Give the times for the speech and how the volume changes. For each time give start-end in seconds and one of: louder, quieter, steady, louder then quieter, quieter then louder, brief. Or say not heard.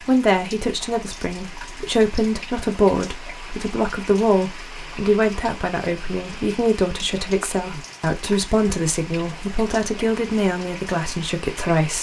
0.1-11.9 steady.